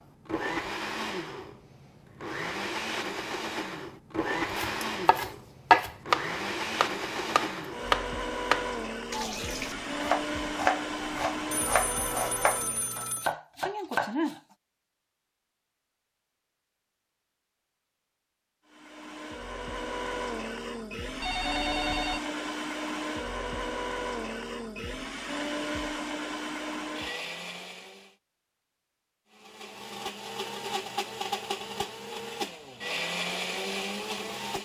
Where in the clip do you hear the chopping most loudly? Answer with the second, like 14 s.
6 s.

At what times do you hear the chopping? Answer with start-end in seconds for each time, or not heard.
4.5-14.4.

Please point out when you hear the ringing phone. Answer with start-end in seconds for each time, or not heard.
11.5-13.3, 21.2-22.2.